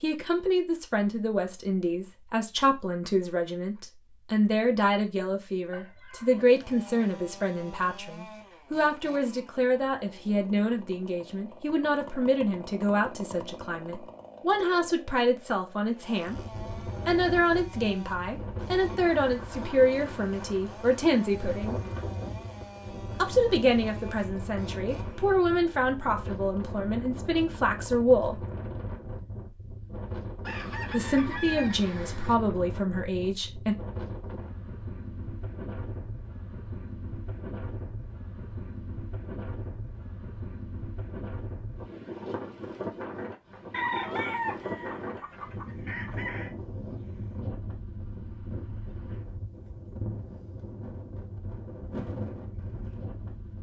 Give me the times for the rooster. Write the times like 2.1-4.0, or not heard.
5.7-7.5, 30.4-32.4, 43.7-46.5.